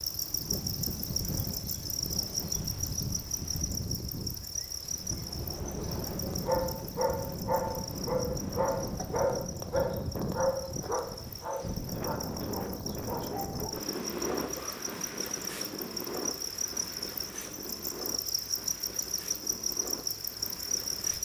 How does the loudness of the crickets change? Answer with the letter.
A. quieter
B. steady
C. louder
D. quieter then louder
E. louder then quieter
D.